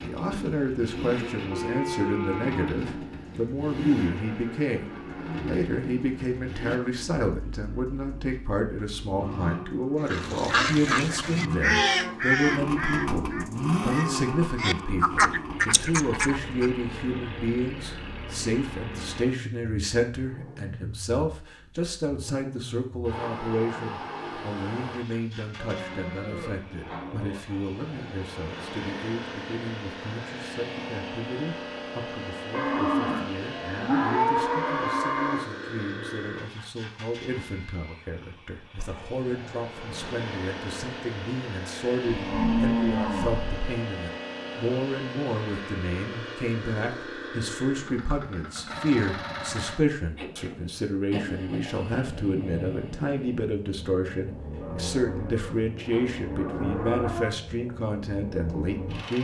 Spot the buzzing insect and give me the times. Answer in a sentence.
The buzzing insect can't be heard in this clip.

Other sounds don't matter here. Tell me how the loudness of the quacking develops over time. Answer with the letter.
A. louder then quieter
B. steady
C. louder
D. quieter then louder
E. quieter
D.